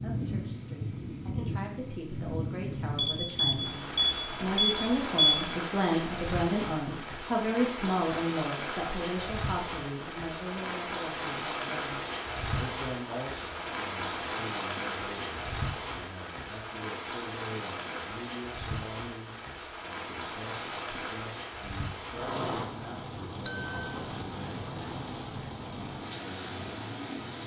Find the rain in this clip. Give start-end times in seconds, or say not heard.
0.0-27.4.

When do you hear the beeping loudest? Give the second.
5 s.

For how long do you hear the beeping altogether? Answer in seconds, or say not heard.
3 s.